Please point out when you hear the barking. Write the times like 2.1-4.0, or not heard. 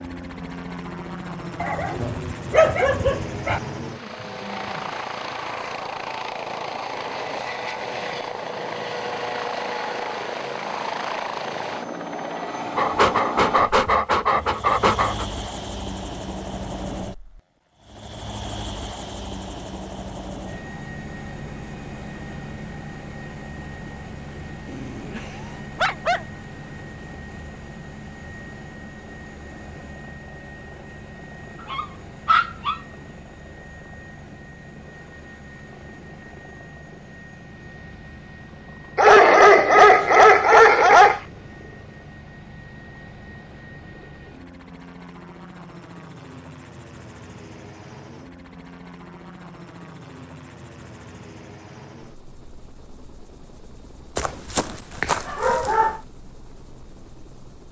1.6-3.6, 12.8-15.2, 24.6-26.2, 31.7-32.8, 39.0-41.2, 54.1-56.0.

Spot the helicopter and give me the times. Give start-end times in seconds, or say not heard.
0.0-57.6.